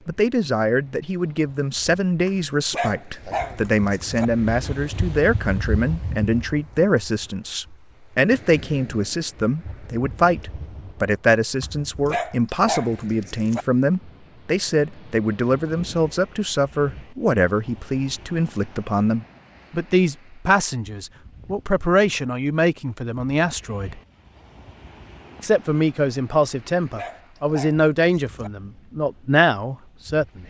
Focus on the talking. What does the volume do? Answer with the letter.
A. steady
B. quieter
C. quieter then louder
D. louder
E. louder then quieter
A.